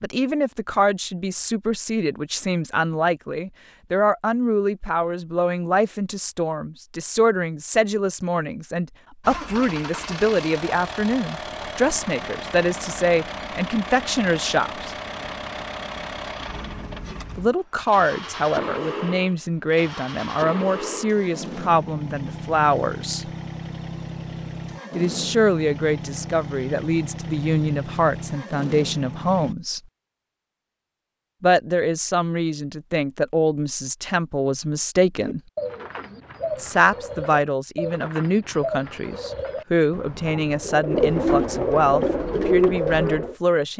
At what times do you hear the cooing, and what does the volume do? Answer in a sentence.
The cooing can be heard from 35.1 to 43.4 s, getting louder.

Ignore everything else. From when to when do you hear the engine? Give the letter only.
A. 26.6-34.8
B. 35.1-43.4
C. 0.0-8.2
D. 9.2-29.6
D.